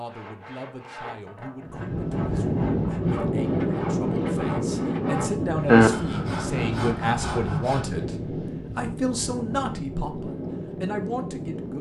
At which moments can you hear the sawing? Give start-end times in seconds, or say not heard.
0.1-7.9.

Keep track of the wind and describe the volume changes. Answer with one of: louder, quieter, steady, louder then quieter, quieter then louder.
quieter.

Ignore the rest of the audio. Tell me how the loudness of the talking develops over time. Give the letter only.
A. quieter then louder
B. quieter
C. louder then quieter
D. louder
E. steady
D.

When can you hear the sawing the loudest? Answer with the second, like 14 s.
6 s.